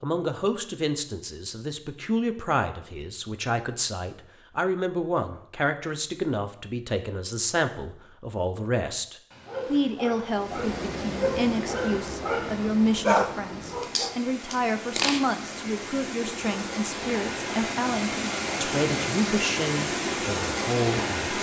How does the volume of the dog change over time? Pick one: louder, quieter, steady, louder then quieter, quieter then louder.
louder then quieter.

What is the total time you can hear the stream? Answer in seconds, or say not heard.
11 s.